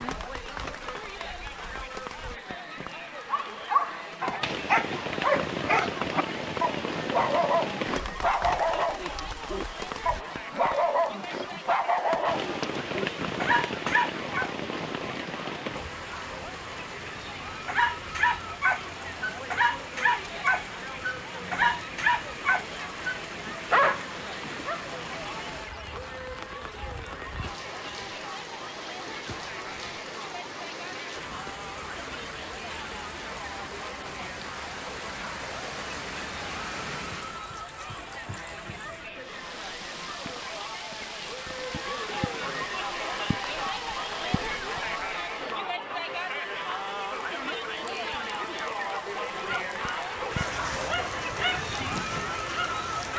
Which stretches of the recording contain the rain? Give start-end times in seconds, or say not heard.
0.0-53.1.